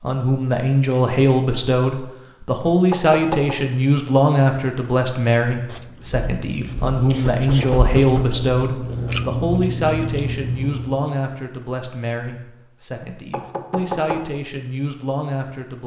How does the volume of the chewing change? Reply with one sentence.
The loudness of the chewing goes up.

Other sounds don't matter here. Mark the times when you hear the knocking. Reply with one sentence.
You can hear the knocking from 2.6 to 3.5 s, from 7.2 to 8.4 s and from 13.0 to 14.2 s.